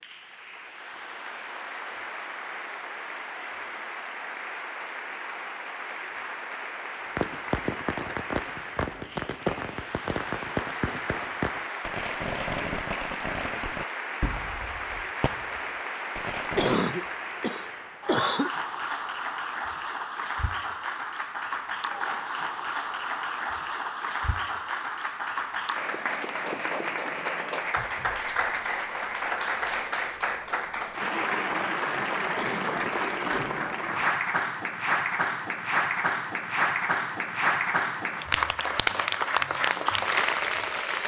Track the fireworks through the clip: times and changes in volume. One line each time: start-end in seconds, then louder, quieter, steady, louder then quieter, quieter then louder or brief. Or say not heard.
7.0-16.8 quieter.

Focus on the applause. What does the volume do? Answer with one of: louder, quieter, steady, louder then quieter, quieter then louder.
louder.